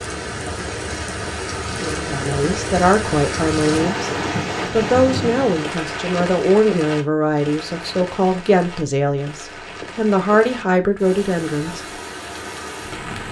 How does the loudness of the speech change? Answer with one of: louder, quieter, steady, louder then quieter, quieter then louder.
steady.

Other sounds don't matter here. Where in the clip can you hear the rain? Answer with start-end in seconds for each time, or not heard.
0.0-13.2.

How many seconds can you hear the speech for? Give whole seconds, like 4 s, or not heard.
10 s.